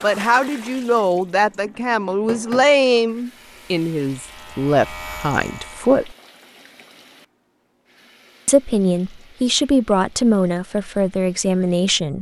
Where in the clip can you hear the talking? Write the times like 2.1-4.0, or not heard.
0.0-6.2, 8.4-12.1.